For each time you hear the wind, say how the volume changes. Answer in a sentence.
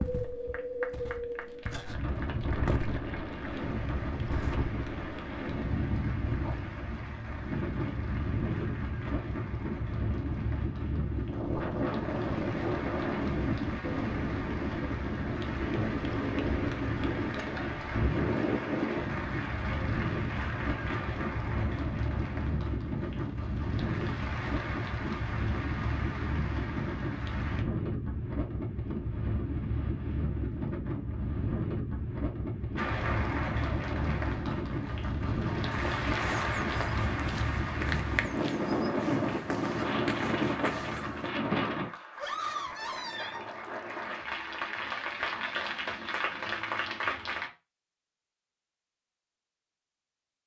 You can hear the wind from 0.0 to 41.9 s, at a steady volume.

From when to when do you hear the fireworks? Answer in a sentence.
You can't hear the fireworks here.